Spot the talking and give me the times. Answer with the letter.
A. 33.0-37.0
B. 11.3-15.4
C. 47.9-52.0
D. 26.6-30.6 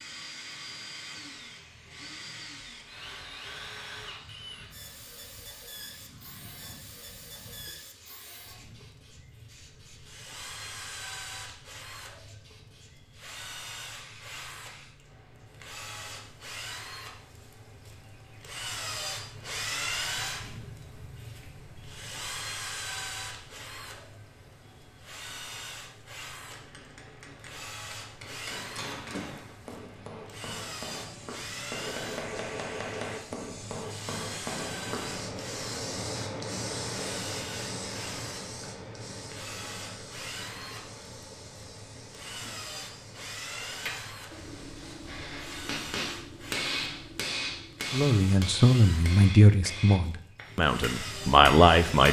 C.